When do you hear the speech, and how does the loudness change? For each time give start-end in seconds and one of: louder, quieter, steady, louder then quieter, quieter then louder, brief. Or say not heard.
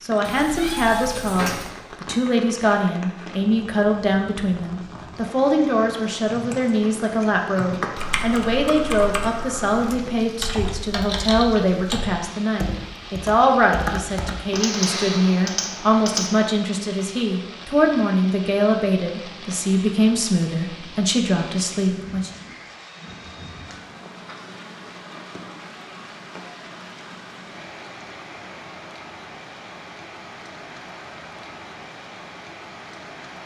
0.0-22.3 steady.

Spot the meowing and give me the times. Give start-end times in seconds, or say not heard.
0.2-1.7.